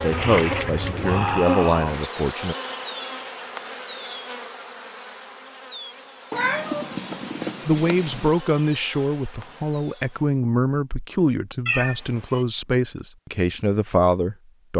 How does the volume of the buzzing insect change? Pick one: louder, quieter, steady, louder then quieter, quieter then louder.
quieter.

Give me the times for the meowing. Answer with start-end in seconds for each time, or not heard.
0.1-1.4, 6.3-8.3, 11.7-12.4.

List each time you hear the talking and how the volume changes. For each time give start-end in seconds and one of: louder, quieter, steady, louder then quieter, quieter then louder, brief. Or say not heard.
0.0-2.5 brief
7.7-14.7 steady.